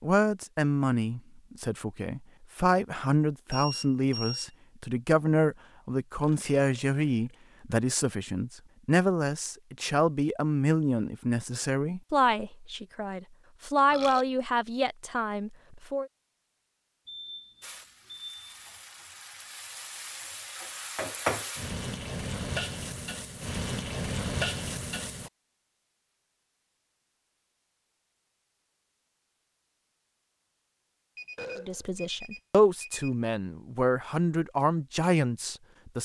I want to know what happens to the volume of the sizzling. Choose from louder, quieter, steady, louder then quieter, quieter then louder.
louder.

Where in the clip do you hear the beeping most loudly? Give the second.
4 s.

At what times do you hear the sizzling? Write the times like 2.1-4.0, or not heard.
17.6-25.3.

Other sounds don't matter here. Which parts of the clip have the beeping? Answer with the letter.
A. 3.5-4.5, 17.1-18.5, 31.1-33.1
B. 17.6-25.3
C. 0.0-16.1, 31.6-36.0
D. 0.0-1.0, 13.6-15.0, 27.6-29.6
A.